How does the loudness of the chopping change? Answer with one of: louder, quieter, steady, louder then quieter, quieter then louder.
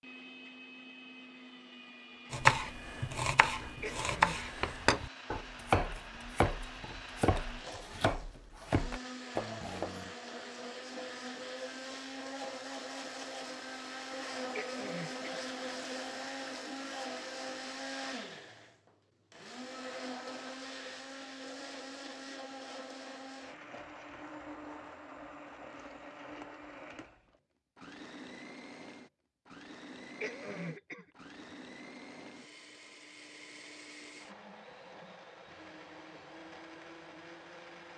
louder then quieter.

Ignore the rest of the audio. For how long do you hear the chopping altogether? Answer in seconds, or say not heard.
8 s.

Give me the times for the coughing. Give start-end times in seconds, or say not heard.
3.8-4.4, 14.6-15.4, 30.2-31.1.